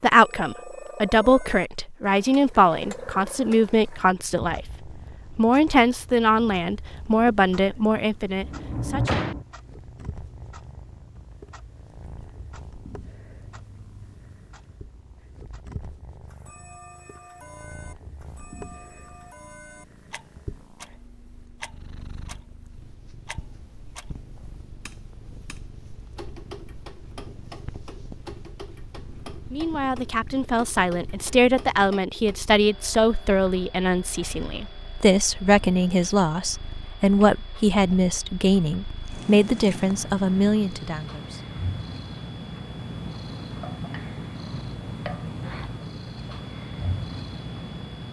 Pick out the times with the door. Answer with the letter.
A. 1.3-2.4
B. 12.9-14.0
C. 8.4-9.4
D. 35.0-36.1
C.